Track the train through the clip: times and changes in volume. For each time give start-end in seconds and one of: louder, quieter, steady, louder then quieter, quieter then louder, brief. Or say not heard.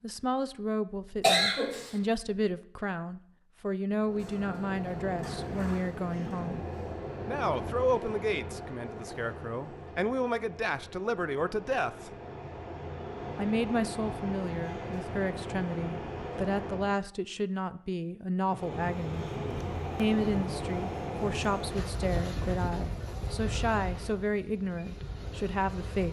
4.0-17.0 quieter then louder
18.4-26.0 quieter.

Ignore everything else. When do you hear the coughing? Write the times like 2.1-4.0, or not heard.
1.2-1.9.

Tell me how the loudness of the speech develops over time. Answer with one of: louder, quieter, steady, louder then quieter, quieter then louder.
steady.